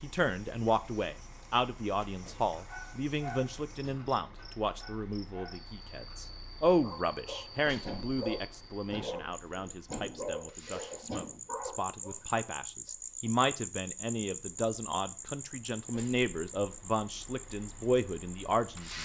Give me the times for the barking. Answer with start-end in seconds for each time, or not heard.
2.5-12.4.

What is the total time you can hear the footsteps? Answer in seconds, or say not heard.
not heard.